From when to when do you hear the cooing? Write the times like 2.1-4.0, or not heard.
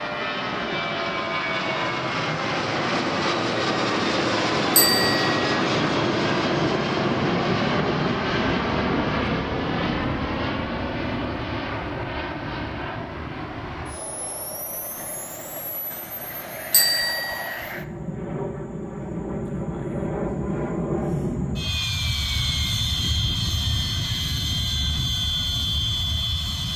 not heard.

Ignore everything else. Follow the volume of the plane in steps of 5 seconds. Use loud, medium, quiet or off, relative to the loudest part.
loud, loud, medium, medium, loud, loud.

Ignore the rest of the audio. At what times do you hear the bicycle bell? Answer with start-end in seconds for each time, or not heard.
4.8-5.3, 16.7-17.5.